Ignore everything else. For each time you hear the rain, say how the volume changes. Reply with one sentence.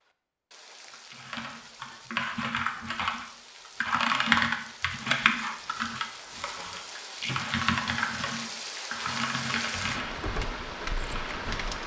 The rain can be heard from 0.0 to 11.8 s, getting louder.